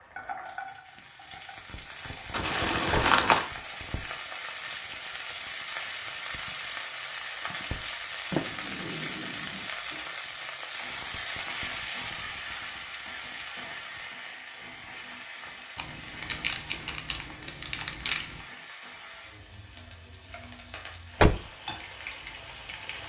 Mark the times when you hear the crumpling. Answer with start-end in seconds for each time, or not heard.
2.3-3.5, 15.8-18.4.